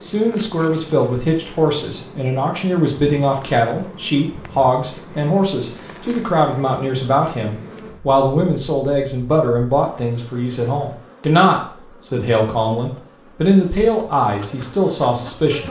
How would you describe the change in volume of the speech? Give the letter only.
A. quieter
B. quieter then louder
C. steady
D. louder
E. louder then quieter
C.